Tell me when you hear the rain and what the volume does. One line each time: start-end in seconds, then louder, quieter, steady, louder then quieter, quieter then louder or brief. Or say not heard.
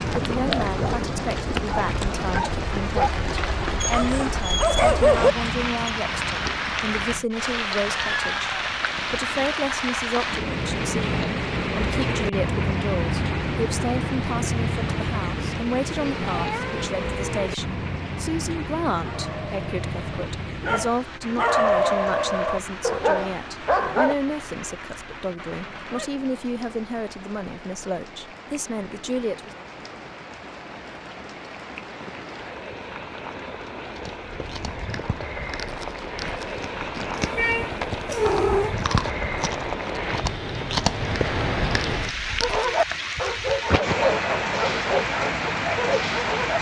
0.0-46.5 quieter then louder.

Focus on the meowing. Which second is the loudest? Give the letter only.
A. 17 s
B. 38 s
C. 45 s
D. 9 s
B.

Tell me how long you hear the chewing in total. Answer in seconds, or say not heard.
9 s.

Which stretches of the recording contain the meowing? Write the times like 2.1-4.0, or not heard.
7.8-8.8, 16.1-17.4, 37.1-38.8.